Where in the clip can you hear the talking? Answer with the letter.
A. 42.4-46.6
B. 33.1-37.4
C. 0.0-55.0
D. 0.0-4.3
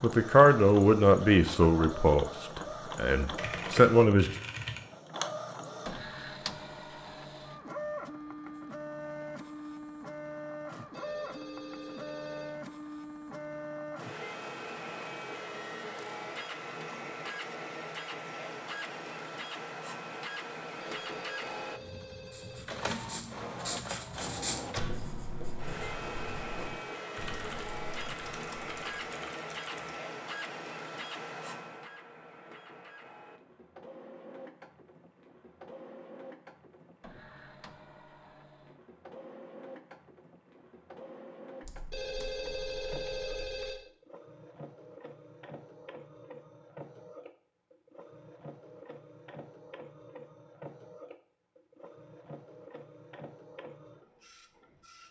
D.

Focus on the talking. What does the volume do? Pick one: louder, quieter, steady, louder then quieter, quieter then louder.
quieter then louder.